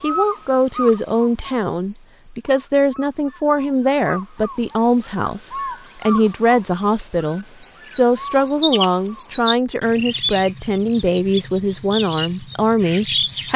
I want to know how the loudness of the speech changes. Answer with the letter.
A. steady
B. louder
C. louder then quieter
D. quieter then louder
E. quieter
A.